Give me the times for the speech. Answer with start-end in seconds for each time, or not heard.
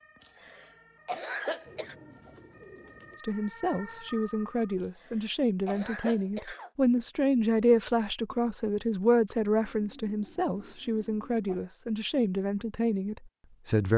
3.2-13.9.